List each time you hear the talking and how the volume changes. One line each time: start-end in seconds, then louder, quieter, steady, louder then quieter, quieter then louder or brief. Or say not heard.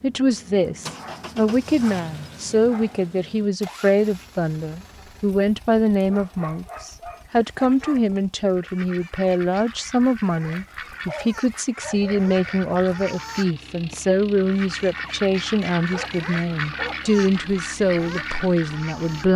0.0-19.3 steady.